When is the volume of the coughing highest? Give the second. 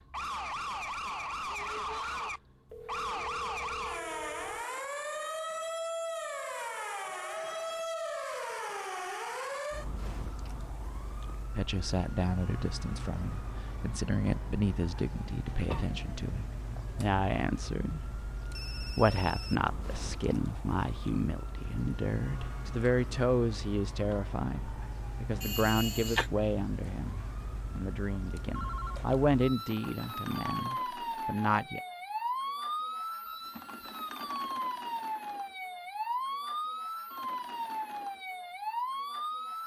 26 s.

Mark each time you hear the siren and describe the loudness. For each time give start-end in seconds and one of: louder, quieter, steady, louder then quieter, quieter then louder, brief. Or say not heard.
0.0-39.6 quieter then louder.